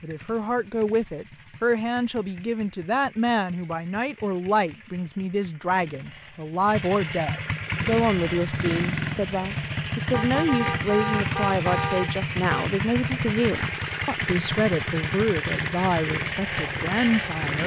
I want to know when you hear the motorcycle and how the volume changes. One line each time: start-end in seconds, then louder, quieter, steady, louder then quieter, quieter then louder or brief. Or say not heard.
0.0-17.6 louder.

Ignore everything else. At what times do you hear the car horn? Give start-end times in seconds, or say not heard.
10.1-12.7.